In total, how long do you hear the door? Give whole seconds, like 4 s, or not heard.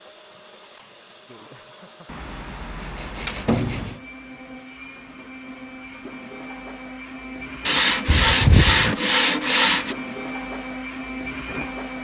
2 s.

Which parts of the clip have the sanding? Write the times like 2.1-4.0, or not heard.
2.0-4.0, 7.7-9.9.